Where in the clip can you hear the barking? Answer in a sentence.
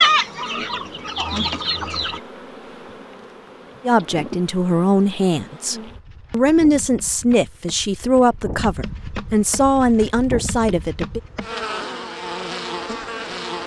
The barking can't be heard in this clip.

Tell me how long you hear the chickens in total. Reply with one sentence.
The chickens can be heard for 2 seconds in total.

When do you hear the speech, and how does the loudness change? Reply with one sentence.
You can hear the speech from 3.9 to 11.2 s, at a steady volume.